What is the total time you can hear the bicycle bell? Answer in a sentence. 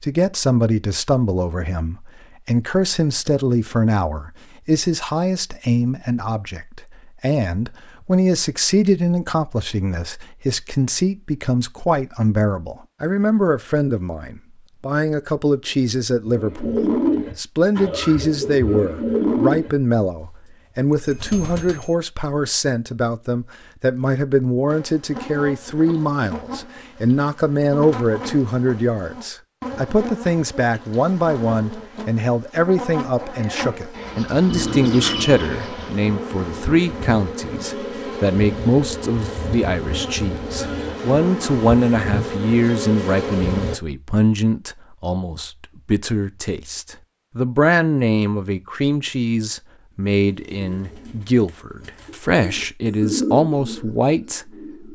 The bicycle bell can be heard for 2 seconds in total.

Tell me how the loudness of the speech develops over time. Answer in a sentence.
The loudness of the speech stays about the same.